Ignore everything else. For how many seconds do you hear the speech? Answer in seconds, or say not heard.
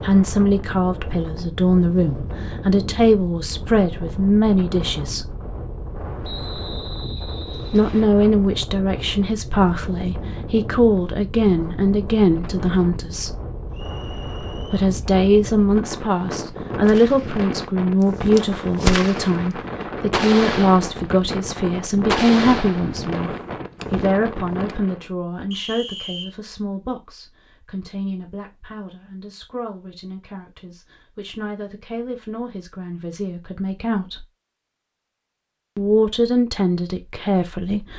33 s.